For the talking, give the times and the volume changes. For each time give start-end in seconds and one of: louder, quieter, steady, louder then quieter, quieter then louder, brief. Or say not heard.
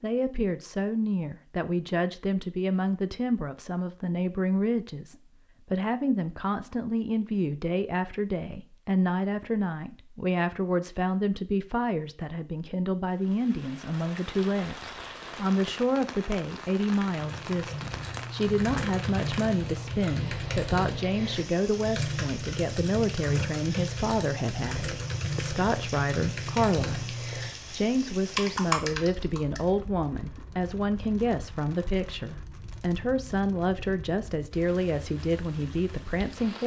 0.0-36.6 steady.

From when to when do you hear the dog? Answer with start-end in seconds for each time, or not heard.
not heard.